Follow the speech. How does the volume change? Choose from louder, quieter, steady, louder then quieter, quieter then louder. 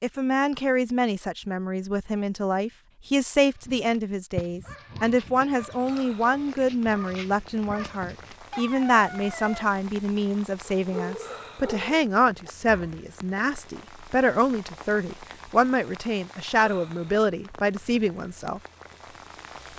steady.